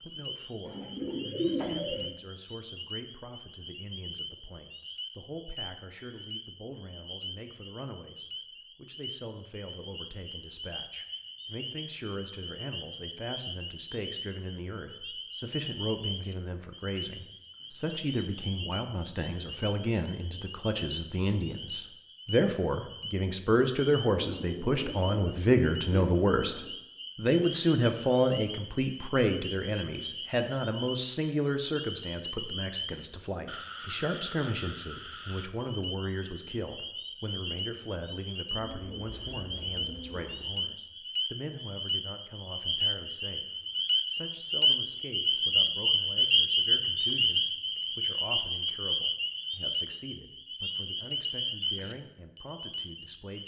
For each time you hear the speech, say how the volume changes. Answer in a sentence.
You can hear the speech from 0.0 to 43.5 s, getting louder then quieter; and from 44.0 to 53.4 s, at a steady volume.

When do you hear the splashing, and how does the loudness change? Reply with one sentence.
The splashing can't be heard in this clip.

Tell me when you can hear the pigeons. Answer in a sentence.
The pigeons can be heard from 0.7 to 2.1 s, from 24.1 to 26.8 s and from 38.5 to 40.5 s.